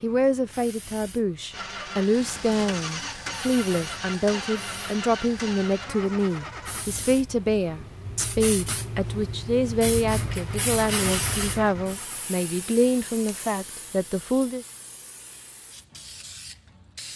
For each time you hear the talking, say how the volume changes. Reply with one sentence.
The talking can be heard from 0.0 to 14.7 s, at a steady volume.